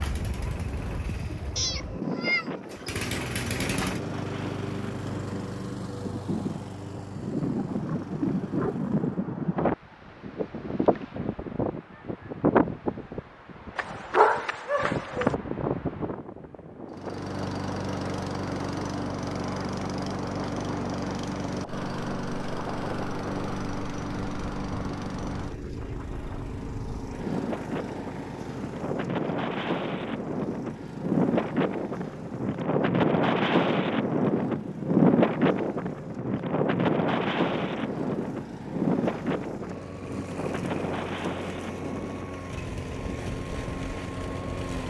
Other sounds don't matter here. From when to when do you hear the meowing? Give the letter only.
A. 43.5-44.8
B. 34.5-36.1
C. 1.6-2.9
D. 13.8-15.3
C.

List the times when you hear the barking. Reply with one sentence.
The barking can be heard from 13.8 to 15.3 s.